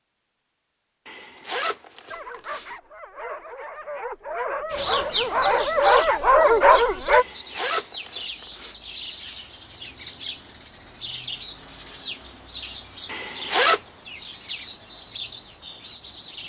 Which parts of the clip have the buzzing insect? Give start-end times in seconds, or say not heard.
not heard.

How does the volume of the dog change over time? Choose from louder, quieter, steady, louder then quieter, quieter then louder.
louder.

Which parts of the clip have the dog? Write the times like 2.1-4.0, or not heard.
2.1-7.2.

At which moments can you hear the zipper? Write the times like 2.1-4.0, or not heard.
1.1-2.8, 7.1-8.8, 13.1-13.8.